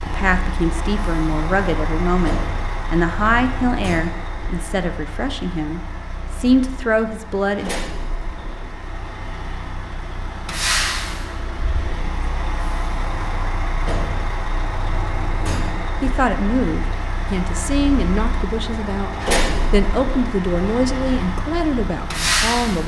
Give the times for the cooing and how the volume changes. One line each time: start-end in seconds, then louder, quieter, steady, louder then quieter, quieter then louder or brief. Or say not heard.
not heard.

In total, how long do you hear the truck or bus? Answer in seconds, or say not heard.
23 s.